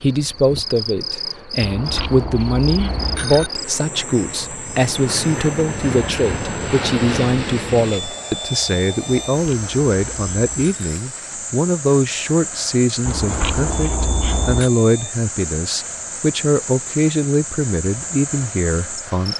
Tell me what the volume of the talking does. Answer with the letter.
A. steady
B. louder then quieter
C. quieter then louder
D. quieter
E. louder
A.